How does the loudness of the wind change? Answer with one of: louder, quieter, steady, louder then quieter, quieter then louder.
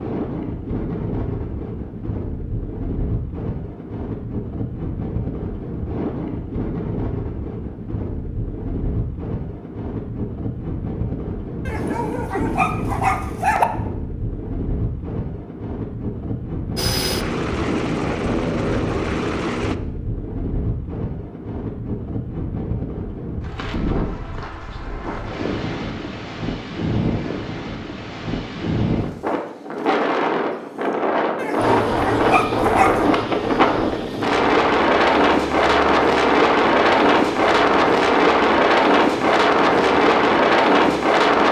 louder.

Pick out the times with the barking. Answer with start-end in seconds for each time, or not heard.
11.7-13.7, 31.4-33.0.